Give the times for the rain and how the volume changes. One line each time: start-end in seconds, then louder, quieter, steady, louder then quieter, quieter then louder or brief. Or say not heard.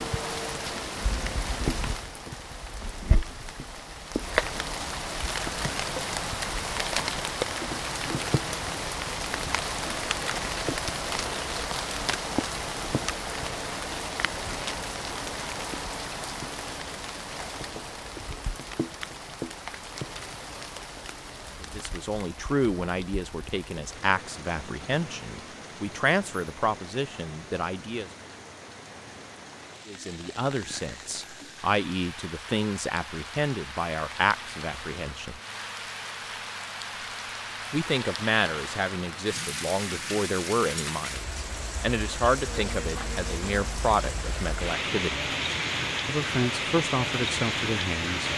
0.0-48.3 quieter then louder.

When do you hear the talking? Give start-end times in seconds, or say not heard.
21.6-28.1, 29.9-35.4, 37.7-45.3, 46.0-48.3.